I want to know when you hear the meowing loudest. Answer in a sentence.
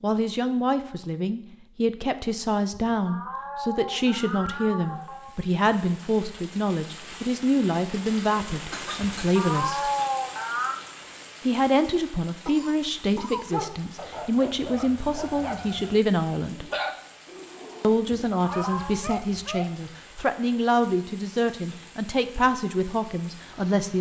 The volume of the meowing peaks at 10 seconds.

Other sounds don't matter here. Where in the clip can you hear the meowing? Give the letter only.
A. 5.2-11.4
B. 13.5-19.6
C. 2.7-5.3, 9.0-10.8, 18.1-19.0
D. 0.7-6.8
C.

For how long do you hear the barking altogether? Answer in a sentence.
The barking can be heard for 6 seconds in total.